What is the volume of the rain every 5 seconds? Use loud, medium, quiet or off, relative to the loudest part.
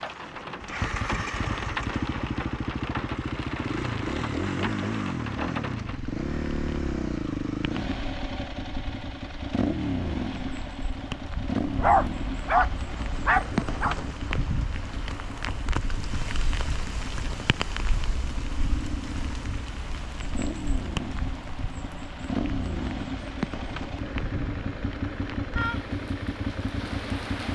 loud, medium, loud, loud, loud, loud.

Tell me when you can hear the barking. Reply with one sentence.
The barking can be heard from 11.8 to 13.9 s.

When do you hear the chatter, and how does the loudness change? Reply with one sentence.
The chatter can't be heard in this clip.